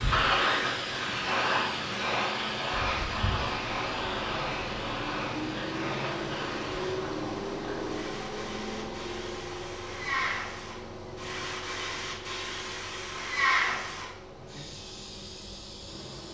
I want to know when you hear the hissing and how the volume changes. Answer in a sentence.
The hissing can be heard from 0.0 to 16.3 s, getting quieter then louder.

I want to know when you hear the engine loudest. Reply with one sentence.
The volume of the engine peaks at 7 seconds.